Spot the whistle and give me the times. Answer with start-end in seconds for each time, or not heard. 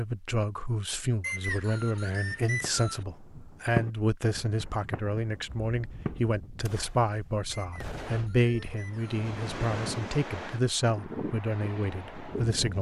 1.2-3.0, 7.5-9.2.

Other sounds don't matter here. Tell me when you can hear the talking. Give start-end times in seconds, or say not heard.
0.0-12.7.